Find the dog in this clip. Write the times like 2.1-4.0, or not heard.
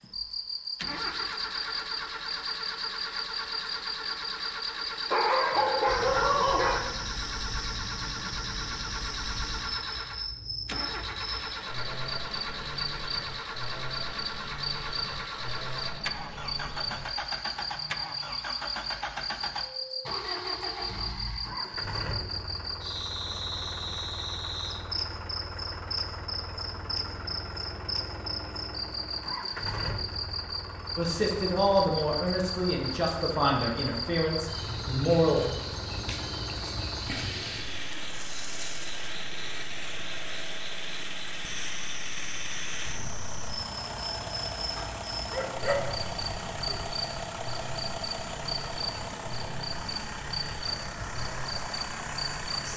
5.1-6.8, 44.8-46.8.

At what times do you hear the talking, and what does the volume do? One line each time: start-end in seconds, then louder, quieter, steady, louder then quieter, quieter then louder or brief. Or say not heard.
30.9-35.4 quieter.